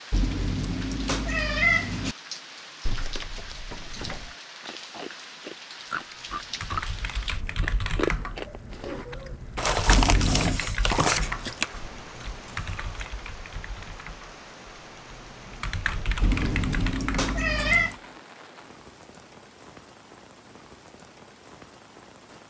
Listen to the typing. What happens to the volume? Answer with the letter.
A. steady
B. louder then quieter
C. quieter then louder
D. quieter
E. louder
C.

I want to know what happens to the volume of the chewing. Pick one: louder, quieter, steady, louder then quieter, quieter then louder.
louder.